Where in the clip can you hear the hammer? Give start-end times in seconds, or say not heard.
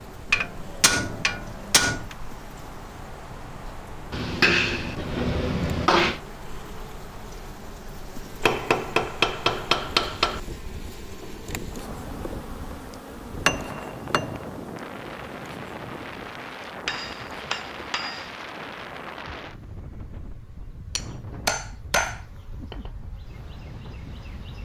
0.3-2.1, 4.1-6.2, 8.4-10.4, 13.4-14.5, 16.9-18.3, 20.9-22.9.